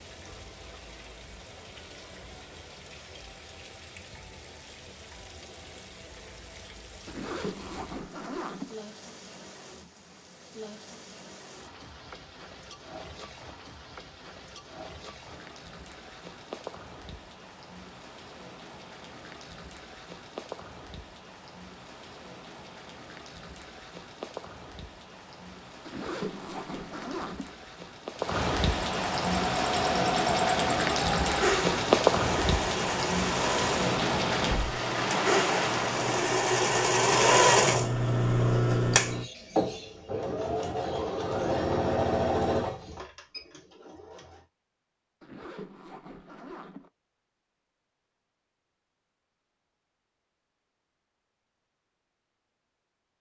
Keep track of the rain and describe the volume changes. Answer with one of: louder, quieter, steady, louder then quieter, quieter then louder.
louder.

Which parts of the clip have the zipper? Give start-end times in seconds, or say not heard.
7.0-8.8, 25.9-27.6, 45.2-46.9.